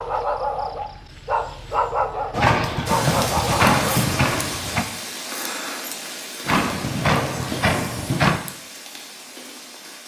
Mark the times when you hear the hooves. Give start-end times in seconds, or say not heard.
2.3-4.8, 6.5-8.4.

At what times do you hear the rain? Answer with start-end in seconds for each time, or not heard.
2.9-10.0.